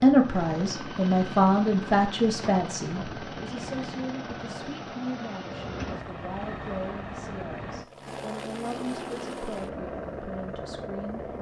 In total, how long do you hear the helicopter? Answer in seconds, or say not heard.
11 s.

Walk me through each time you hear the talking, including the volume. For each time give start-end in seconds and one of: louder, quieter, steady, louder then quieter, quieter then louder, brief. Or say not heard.
0.0-11.3 quieter.